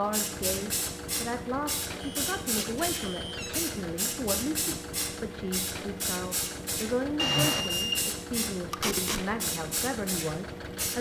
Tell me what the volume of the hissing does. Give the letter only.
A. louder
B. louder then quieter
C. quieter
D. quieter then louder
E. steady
E.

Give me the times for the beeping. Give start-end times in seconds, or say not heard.
2.0-3.6, 7.2-8.0.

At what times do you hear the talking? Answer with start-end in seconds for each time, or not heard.
0.0-10.9.